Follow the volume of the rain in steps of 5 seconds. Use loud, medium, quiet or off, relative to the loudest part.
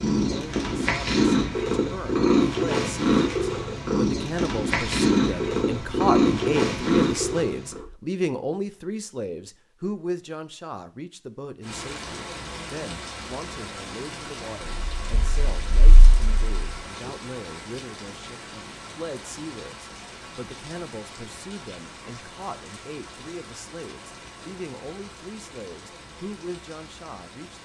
off, off, loud, loud, medium, medium.